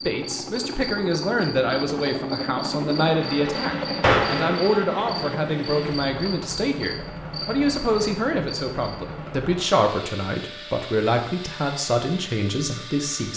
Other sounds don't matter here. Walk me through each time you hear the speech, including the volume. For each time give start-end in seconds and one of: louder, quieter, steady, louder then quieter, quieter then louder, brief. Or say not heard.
0.0-13.3 steady.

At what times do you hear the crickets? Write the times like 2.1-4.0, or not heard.
0.0-8.9.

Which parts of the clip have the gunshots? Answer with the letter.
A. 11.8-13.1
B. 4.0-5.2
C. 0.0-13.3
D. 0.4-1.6
B.